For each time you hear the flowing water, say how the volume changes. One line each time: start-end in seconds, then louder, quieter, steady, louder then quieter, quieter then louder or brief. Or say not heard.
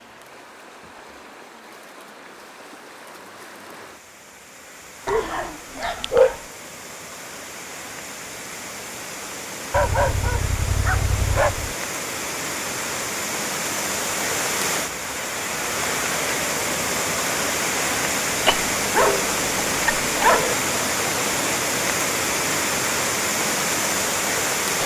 0.0-24.8 louder.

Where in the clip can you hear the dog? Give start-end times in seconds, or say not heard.
5.0-6.3, 9.7-11.8, 18.4-20.6.